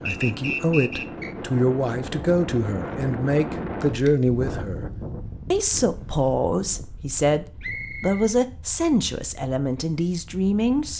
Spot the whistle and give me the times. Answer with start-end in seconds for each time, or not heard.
0.1-1.4, 7.6-8.3.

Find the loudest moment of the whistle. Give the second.
1 s.